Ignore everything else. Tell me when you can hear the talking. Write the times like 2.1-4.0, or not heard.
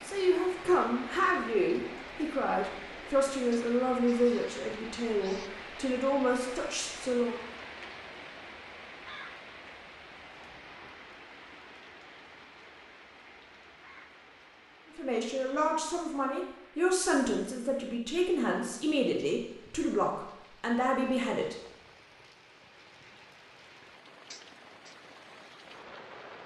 0.0-7.3, 14.9-21.6.